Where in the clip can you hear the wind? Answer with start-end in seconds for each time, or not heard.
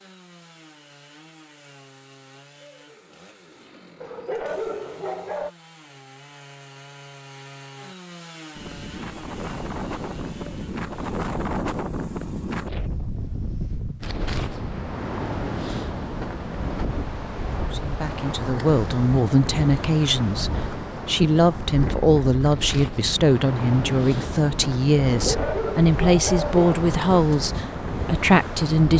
8.6-28.9.